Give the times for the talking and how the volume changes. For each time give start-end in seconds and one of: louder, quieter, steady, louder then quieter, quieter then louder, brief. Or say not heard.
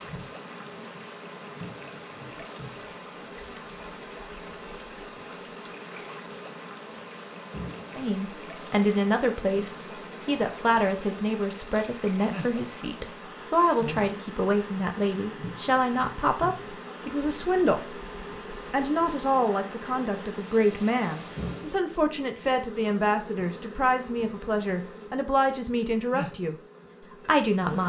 7.9-18.0 steady
18.7-26.6 steady
27.2-27.8 brief.